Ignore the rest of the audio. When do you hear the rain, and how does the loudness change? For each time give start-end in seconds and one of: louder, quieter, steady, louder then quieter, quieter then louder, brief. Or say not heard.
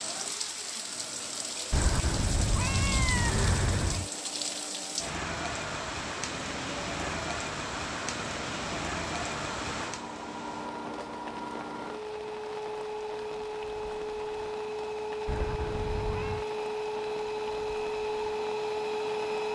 0.0-19.5 quieter.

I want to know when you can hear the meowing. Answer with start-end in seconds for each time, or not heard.
1.7-4.1, 15.2-16.4.